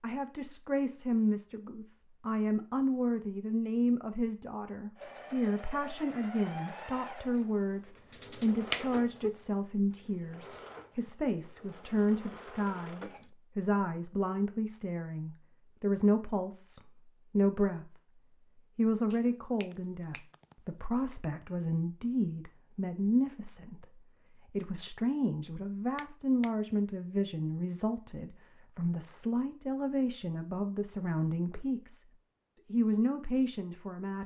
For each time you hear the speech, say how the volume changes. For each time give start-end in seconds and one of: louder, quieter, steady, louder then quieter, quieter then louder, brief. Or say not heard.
0.0-34.2 steady.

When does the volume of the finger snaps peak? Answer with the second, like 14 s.
9 s.